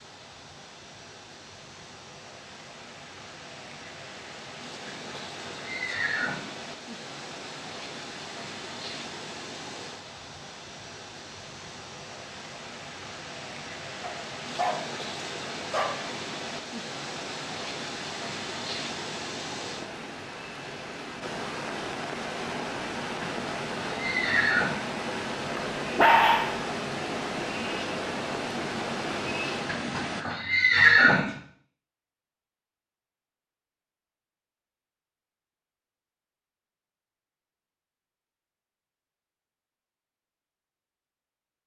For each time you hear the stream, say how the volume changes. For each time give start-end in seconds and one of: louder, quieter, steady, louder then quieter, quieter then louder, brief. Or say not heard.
0.0-30.2 louder.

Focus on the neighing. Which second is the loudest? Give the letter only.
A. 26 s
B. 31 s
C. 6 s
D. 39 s
B.